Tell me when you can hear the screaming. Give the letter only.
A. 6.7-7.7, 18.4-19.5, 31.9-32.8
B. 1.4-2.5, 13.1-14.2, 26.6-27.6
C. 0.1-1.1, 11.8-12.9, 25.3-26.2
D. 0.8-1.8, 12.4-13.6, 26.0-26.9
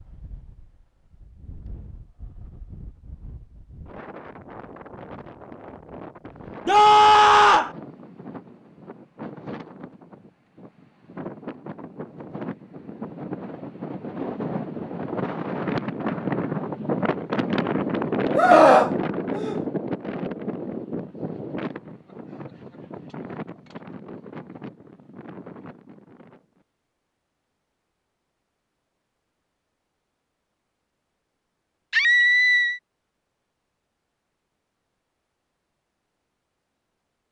A.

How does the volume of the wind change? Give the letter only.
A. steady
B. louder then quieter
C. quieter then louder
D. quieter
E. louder
B.